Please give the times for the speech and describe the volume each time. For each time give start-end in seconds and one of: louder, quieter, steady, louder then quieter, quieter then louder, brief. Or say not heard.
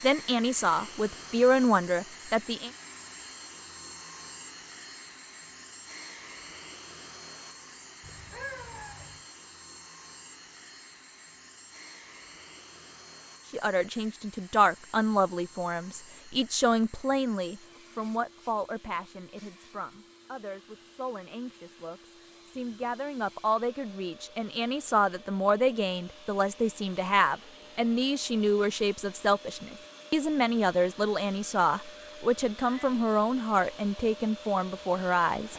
0.0-2.7 brief
13.5-35.5 quieter then louder.